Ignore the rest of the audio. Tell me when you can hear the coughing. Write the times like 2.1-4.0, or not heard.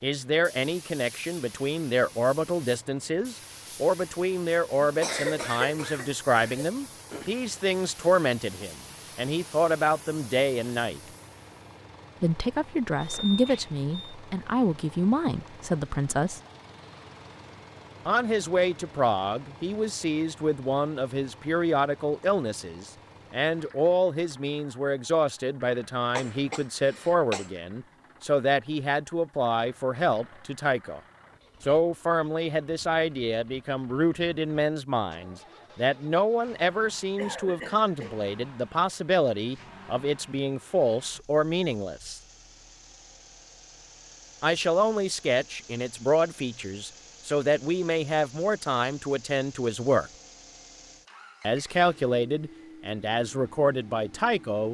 4.8-7.3, 26.1-27.5, 37.1-38.2.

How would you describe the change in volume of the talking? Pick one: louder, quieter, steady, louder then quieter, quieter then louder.
steady.